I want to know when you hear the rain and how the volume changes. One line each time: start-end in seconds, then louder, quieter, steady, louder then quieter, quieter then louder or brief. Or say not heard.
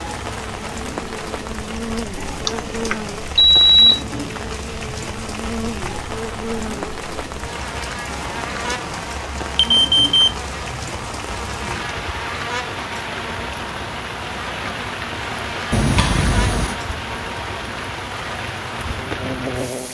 0.0-19.9 steady.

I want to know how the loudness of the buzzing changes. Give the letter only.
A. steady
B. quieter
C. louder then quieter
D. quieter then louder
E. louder
A.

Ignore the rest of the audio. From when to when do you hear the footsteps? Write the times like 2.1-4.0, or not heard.
not heard.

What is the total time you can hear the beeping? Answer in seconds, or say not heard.
4 s.